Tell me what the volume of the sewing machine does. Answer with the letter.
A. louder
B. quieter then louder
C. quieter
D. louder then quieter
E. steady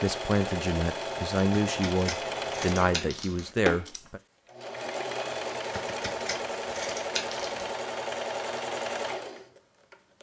E.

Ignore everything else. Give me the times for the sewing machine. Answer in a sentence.
The sewing machine can be heard from 0.0 to 10.1 s.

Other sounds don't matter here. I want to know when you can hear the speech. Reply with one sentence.
The speech can be heard from 0.0 to 4.2 s.